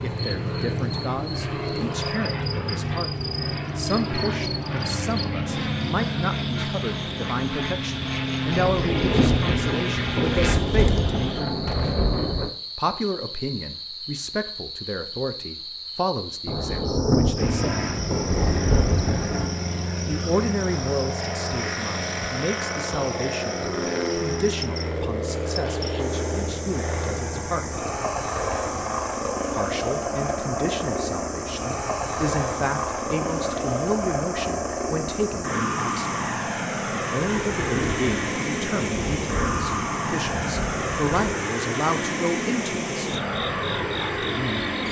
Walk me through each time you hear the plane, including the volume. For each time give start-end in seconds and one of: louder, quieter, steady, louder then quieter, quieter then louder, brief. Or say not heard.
0.0-10.6 steady
17.4-44.8 steady.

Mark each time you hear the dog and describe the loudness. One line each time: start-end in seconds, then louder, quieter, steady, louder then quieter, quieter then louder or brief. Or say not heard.
not heard.